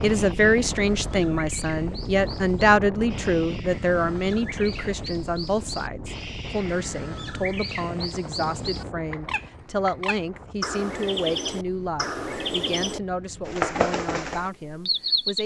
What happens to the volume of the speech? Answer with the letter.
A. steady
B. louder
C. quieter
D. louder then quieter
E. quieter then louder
C.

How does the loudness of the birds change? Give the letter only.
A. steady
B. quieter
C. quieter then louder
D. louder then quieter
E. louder
E.